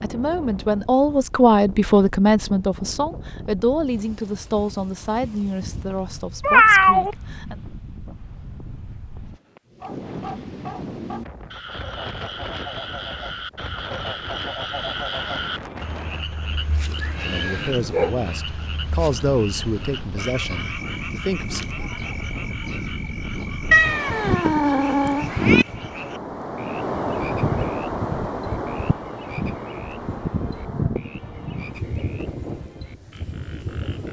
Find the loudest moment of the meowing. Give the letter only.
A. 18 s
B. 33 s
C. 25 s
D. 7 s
D.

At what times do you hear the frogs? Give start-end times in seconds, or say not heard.
9.7-34.0.